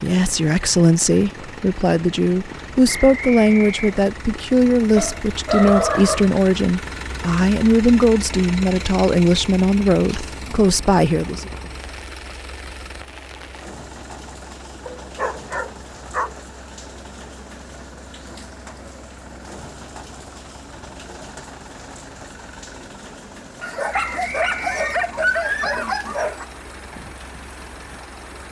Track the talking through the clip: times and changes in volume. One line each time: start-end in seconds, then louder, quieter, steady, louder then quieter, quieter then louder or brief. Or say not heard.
0.0-11.5 steady.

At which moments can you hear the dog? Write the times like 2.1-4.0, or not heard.
5.0-6.3, 14.8-16.4, 23.6-26.4.